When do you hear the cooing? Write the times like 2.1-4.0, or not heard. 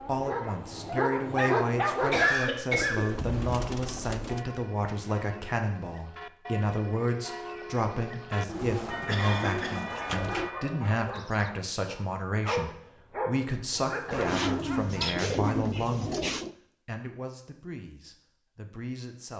2.8-4.5, 8.4-10.6, 14.1-16.6.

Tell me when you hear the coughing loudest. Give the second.
2 s.